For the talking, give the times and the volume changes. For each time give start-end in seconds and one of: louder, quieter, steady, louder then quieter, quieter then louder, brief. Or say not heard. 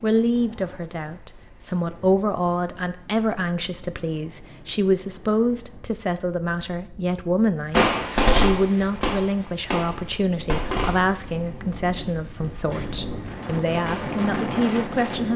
0.0-15.3 steady.